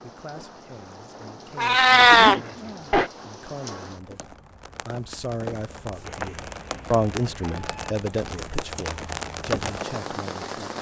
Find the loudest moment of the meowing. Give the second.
2 s.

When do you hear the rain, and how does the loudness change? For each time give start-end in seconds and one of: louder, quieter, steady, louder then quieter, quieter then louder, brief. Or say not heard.
0.0-10.7 louder.